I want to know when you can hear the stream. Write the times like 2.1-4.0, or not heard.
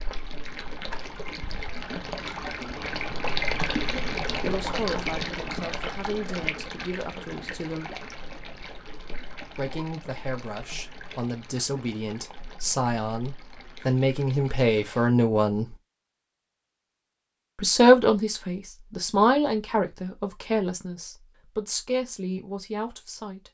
0.0-15.1.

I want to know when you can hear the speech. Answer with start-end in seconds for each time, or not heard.
4.4-8.0, 9.6-15.8, 17.6-23.4.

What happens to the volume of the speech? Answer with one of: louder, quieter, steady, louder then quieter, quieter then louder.
louder then quieter.